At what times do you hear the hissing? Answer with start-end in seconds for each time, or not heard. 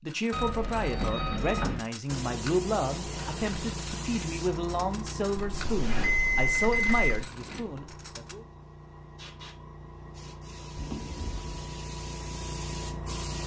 2.0-13.4.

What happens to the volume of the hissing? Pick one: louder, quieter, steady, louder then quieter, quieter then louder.
quieter then louder.